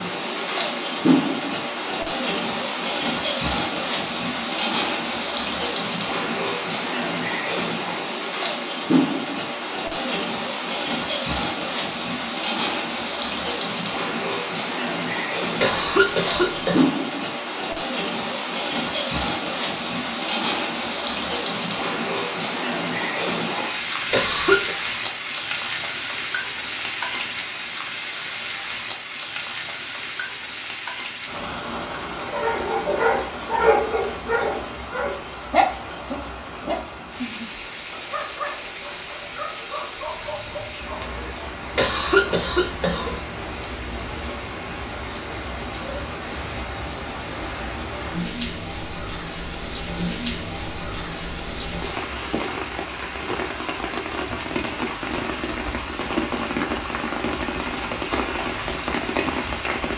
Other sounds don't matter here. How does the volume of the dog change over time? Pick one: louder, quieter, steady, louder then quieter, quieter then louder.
quieter.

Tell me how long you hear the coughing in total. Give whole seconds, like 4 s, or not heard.
3 s.